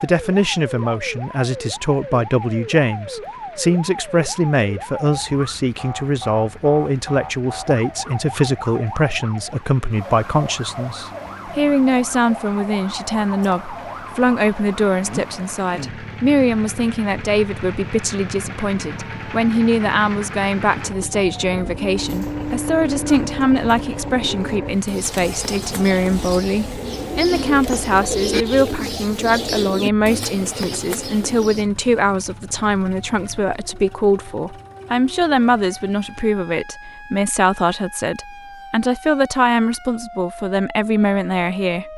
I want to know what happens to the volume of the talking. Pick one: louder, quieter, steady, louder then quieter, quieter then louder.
steady.